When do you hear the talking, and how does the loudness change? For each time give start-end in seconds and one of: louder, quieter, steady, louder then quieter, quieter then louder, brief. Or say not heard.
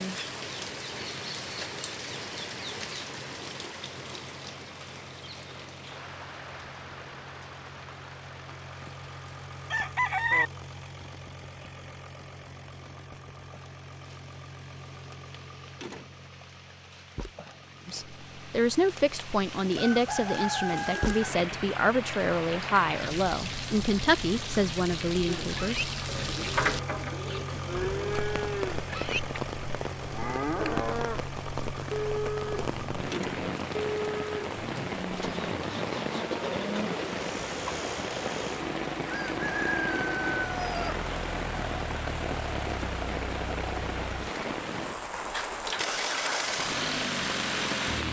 17.9-25.9 steady.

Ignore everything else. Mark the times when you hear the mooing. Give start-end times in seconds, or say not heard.
25.2-36.9.